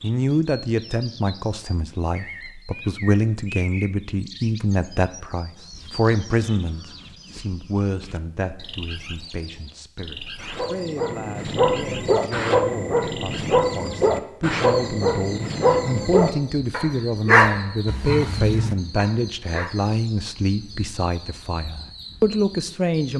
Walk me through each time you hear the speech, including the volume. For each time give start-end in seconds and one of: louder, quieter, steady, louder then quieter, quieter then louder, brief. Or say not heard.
0.0-23.1 quieter then louder.